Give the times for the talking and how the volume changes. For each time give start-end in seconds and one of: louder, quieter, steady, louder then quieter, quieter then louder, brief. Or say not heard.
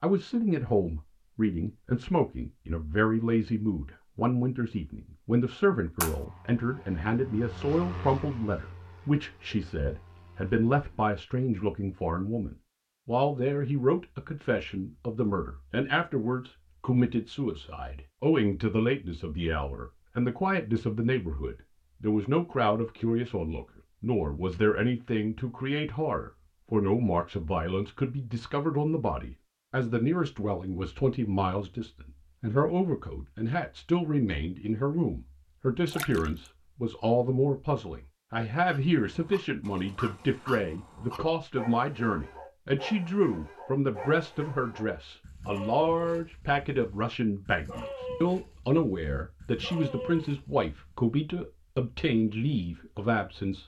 0.0-53.6 steady.